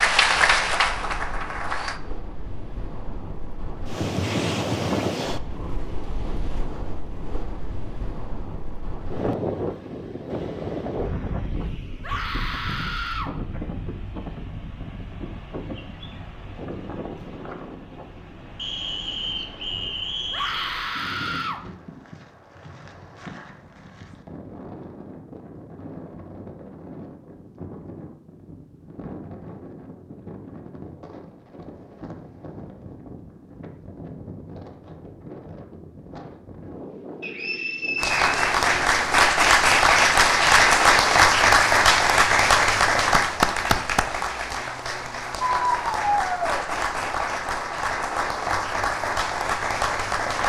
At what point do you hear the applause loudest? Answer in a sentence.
The loudest moment of the applause is at 41 seconds.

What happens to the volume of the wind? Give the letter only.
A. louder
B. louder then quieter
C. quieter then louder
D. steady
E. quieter
E.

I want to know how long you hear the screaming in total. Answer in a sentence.
You can hear the screaming for 4 seconds altogether.